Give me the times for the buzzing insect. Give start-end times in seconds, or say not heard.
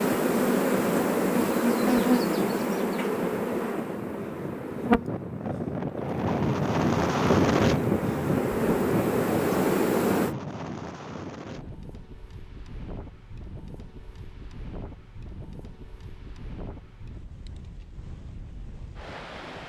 0.0-10.3.